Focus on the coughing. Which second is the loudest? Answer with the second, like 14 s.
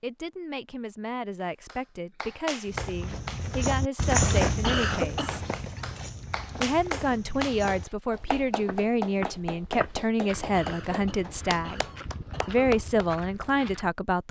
5 s.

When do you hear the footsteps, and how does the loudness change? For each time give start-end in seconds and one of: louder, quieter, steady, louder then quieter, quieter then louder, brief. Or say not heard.
2.6-13.9 quieter.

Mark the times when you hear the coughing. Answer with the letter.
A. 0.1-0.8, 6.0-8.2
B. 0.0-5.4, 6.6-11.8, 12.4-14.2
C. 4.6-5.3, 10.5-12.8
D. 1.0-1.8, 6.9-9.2
C.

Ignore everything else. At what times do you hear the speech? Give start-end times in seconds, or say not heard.
0.0-5.4, 6.6-11.8, 12.4-14.2.